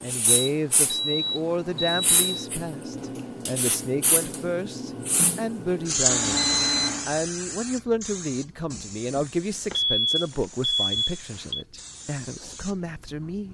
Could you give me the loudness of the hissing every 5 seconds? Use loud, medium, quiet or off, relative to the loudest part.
loud, loud, quiet.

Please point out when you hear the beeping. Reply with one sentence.
The beeping can be heard from 0.2 to 2.5 s, from 6.0 to 7.1 s and from 9.7 to 11.7 s.